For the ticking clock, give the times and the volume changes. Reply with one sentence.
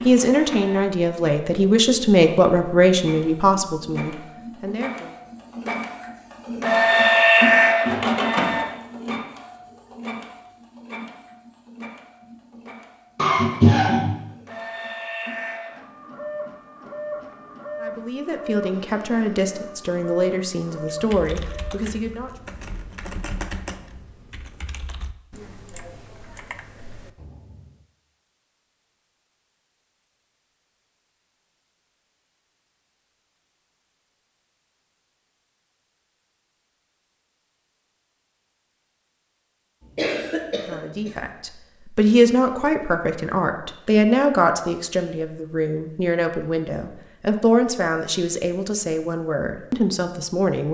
You can't hear the ticking clock here.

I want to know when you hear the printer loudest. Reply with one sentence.
The volume of the printer peaks at 7 seconds.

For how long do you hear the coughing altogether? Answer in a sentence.
The coughing can be heard for 2 seconds in total.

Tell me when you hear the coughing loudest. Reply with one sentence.
The loudest moment of the coughing is at 14 seconds.